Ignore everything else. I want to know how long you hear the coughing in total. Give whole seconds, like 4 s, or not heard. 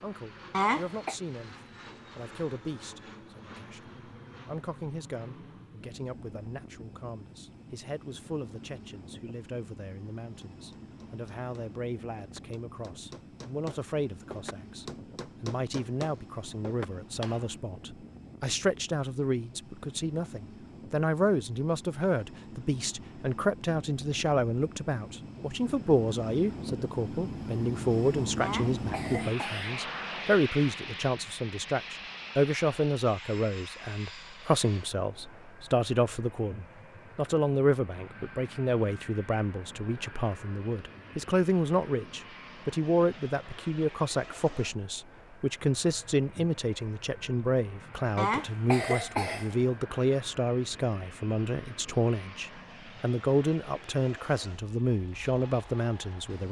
3 s.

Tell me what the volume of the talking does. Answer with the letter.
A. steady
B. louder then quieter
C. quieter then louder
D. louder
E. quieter
D.